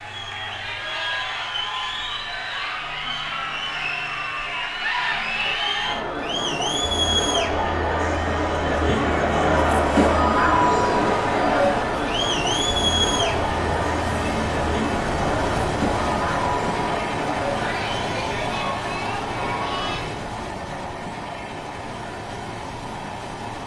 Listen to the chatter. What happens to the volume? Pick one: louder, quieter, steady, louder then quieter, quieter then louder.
louder then quieter.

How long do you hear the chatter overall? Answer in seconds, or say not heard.
20 s.